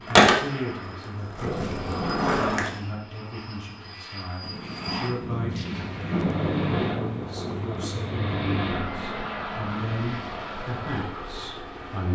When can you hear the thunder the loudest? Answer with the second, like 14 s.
7 s.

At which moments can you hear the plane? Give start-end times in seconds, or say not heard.
0.0-12.1.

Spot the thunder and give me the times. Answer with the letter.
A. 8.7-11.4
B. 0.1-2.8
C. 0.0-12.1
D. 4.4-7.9
D.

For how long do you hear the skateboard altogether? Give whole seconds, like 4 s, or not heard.
3 s.